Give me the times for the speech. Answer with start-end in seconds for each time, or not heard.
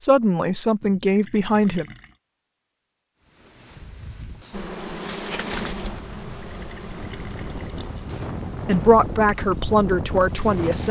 0.0-1.9, 8.7-10.8.